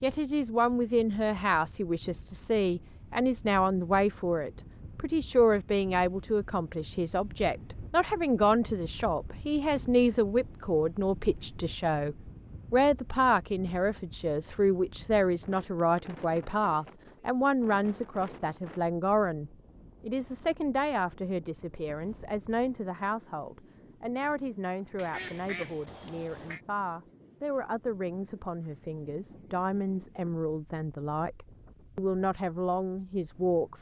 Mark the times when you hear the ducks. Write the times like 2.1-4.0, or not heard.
24.9-26.6.